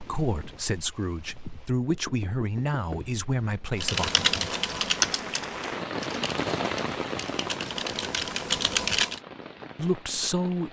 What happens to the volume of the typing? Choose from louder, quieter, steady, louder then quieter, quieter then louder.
quieter then louder.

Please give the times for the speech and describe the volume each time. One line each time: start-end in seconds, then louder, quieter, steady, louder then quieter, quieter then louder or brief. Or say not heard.
0.0-4.1 quieter then louder
9.8-10.6 brief.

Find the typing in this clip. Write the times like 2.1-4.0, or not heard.
3.8-9.2.